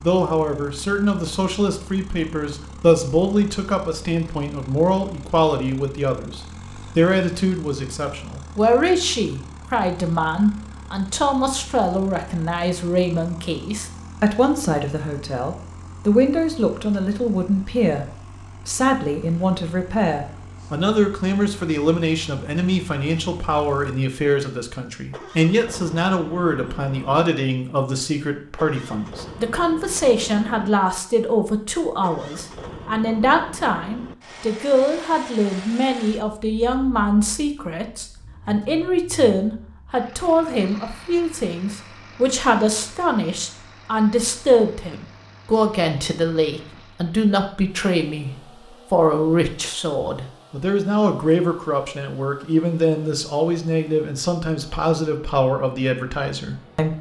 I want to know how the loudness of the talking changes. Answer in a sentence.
The loudness of the talking stays about the same.